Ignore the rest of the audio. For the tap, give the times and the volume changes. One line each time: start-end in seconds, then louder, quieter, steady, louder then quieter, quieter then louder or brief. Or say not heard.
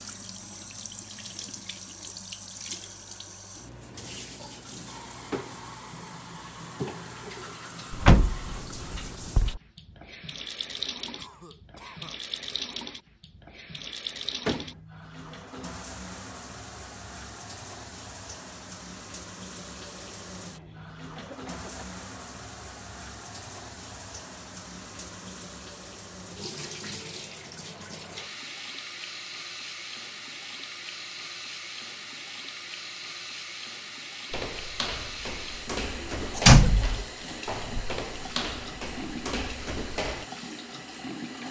0.0-41.4 steady.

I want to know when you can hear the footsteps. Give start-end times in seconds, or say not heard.
34.3-40.2.